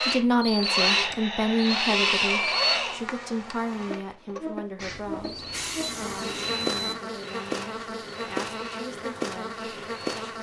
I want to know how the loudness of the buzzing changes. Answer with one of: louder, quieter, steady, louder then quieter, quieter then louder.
louder.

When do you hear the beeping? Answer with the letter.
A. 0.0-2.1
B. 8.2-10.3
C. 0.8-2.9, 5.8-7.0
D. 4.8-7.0
C.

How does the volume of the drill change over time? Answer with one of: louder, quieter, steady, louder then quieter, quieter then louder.
quieter.